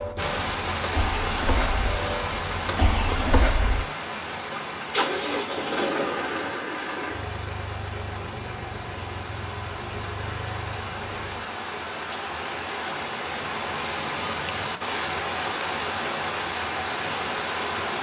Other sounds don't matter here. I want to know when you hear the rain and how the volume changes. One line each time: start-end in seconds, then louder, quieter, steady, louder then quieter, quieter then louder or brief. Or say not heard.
0.0-17.9 quieter then louder.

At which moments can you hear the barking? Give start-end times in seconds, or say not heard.
not heard.